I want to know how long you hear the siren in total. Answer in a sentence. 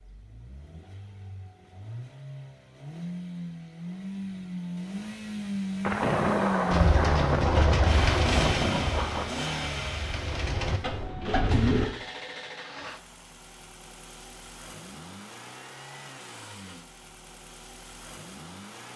You can't hear the siren here.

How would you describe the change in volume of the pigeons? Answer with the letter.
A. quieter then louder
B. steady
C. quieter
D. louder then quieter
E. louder
A.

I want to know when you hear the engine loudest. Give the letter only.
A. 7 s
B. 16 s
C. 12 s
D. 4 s
A.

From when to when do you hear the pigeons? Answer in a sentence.
The pigeons can be heard from 6.7 to 11.9 s.